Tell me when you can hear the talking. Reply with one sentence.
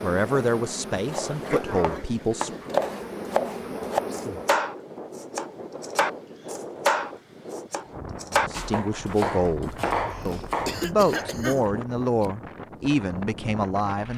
You can hear the talking from 0.0 to 2.6 s and from 8.5 to 14.1 s.